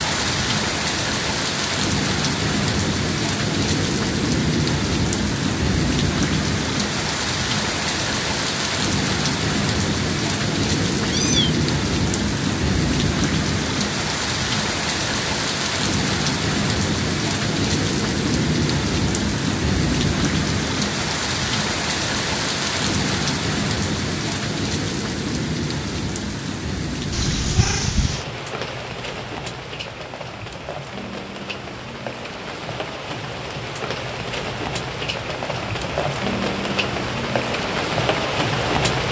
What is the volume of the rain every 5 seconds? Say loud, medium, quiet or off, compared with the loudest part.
loud, loud, loud, loud, loud, medium, medium, loud.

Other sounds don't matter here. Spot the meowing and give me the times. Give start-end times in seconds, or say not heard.
11.0-11.5, 27.1-28.2.